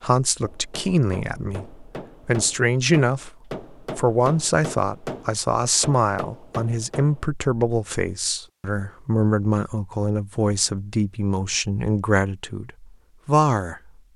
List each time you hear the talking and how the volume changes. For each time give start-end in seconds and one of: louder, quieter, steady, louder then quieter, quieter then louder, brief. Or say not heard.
0.0-13.9 steady.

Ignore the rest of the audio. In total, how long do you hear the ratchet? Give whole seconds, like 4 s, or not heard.
not heard.